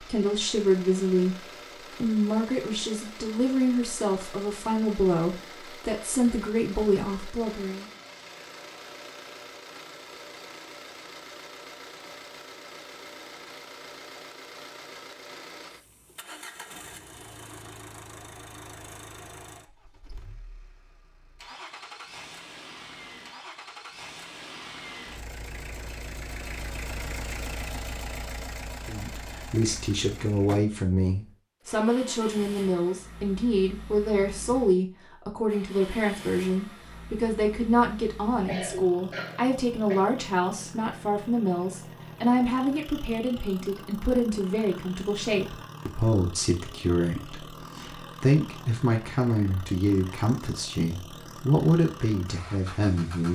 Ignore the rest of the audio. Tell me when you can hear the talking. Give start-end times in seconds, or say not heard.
0.0-1.4, 2.0-7.8, 28.9-53.2.